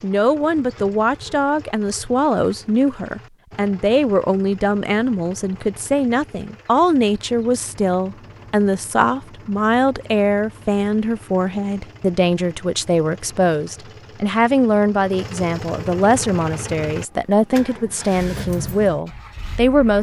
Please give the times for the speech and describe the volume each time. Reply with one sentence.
You can hear the speech from 0.0 to 19.9 s, at a steady volume.